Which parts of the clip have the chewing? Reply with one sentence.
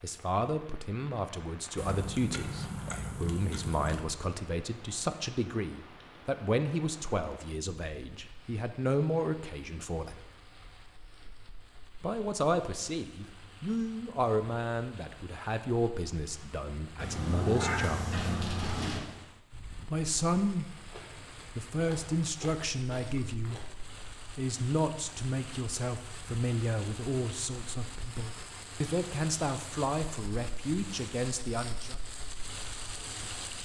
You can hear the chewing from 1.8 to 4.0 s and from 20.9 to 23.7 s.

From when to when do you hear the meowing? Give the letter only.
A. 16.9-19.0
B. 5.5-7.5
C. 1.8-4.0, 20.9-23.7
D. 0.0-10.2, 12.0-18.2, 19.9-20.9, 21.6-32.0
A.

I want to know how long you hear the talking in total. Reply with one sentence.
You can hear the talking for 28 seconds altogether.